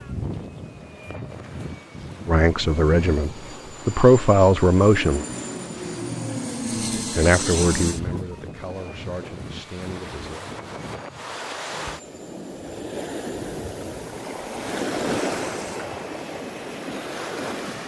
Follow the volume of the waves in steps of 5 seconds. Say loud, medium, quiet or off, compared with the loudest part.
quiet, quiet, loud, loud.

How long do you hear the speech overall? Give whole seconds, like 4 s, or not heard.
6 s.